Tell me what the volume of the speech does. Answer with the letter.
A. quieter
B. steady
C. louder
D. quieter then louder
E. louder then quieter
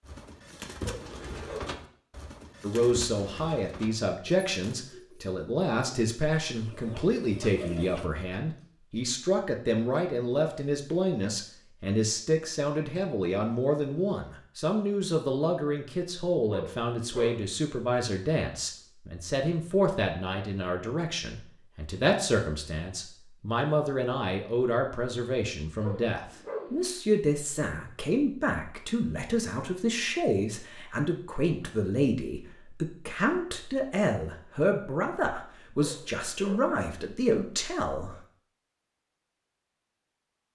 B.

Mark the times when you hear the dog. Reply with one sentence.
You can hear the dog from 0.8 to 1.8 s, from 16.5 to 17.4 s, from 25.8 to 26.8 s and from 35.8 to 36.8 s.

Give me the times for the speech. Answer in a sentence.
The speech can be heard from 2.6 to 38.2 s.